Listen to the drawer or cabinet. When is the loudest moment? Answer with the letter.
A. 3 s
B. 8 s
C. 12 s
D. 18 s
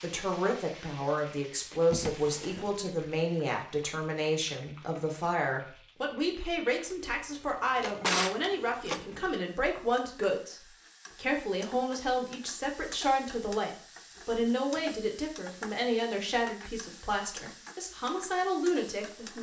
B.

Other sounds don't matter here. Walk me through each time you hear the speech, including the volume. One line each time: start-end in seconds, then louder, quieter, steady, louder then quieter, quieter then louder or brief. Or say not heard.
0.0-19.3 steady.